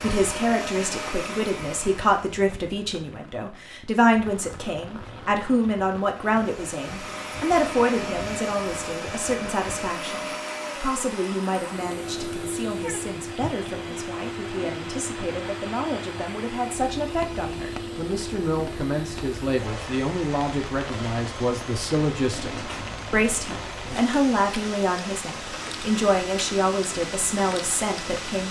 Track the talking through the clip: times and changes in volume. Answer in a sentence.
The talking can be heard from 0.0 to 28.4 s, getting quieter then louder.